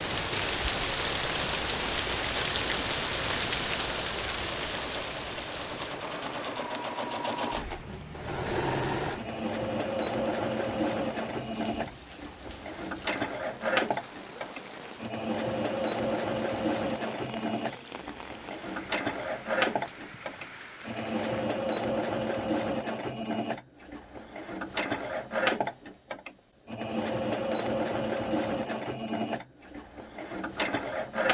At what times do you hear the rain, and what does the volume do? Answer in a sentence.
You can hear the rain from 0.0 to 21.5 s, getting quieter.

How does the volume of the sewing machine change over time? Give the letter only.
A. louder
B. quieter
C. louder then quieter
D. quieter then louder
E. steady
E.